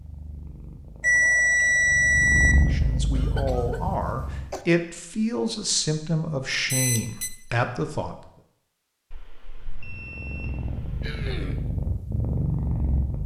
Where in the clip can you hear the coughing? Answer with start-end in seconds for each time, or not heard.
3.1-4.7, 11.0-11.7.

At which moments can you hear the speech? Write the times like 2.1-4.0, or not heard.
2.5-8.2.